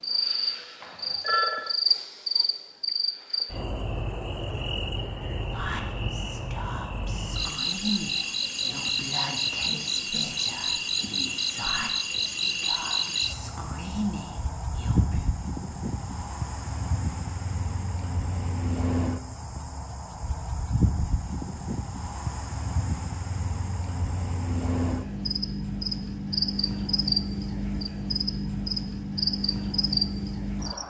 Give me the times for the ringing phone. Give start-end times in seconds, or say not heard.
0.8-1.8.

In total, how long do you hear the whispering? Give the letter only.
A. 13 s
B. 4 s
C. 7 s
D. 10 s
D.